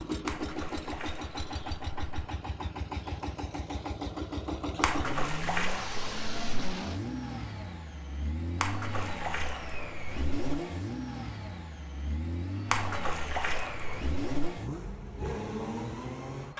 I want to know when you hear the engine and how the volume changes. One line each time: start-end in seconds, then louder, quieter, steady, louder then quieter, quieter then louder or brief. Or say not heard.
0.0-16.5 steady.